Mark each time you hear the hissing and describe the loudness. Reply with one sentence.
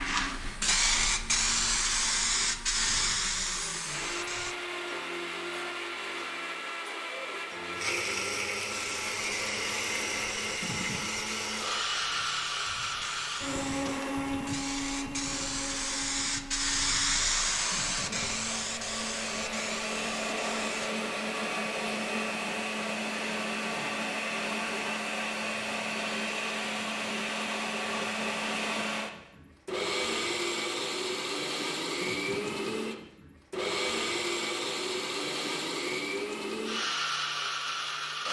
You can hear the hissing from 0.0 to 4.5 s, getting quieter; and from 8.7 to 20.9 s, getting louder then quieter.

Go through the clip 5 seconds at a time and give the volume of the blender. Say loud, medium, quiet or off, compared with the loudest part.
medium, loud, loud, medium, loud, loud, loud, loud.